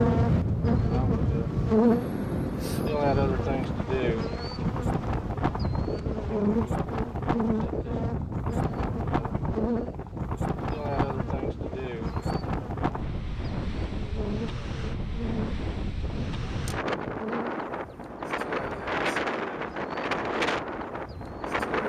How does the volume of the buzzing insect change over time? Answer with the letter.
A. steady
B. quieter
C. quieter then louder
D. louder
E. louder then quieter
B.